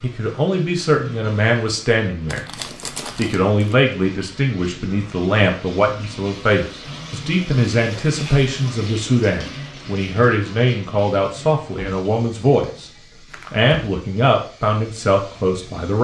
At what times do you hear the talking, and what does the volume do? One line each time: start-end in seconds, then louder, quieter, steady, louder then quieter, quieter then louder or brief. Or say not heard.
0.0-2.4 brief
3.1-12.9 steady
13.5-15.9 brief.